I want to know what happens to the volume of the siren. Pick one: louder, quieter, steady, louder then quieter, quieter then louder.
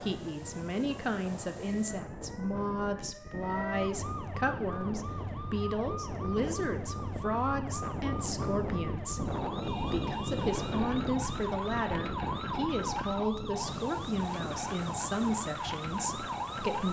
louder.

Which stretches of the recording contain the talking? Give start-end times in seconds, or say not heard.
0.0-16.8.